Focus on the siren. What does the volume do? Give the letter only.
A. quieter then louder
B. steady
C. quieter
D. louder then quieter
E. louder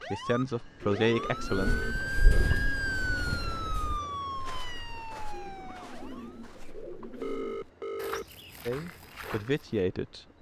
D.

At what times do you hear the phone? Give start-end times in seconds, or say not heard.
1.1-2.5, 7.2-8.2.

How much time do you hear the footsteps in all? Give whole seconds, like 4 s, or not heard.
8 s.